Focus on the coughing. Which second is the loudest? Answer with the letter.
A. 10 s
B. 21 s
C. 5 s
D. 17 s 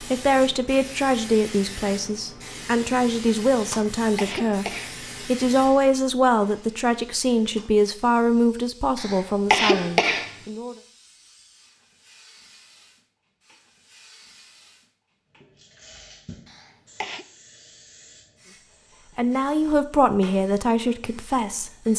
A.